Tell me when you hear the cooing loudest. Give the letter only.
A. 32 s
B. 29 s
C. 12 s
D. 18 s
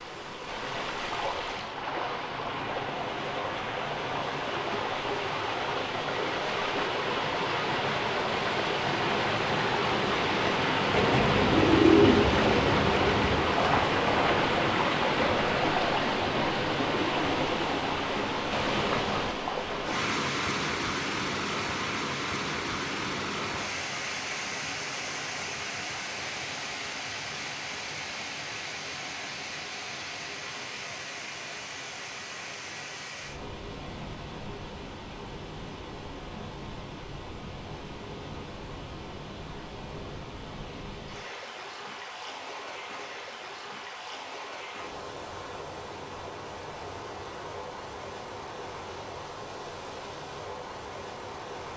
C.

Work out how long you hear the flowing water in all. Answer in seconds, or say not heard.
52 s.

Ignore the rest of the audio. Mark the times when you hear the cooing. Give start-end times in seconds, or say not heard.
10.9-13.6.